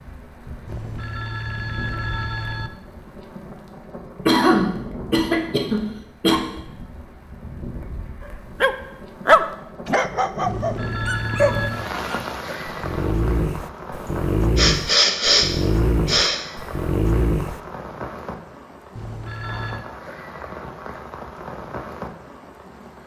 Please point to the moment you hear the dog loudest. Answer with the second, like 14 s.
9 s.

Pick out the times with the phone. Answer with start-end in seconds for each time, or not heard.
0.7-2.7, 10.4-11.9, 18.9-19.9.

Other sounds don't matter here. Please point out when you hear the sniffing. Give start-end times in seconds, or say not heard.
4.2-6.3, 14.1-16.4.